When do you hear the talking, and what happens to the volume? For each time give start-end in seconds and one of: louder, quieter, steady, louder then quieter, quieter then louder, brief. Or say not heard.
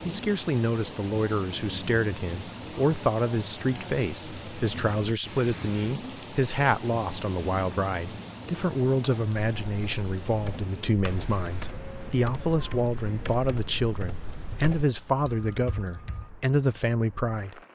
0.1-17.6 steady.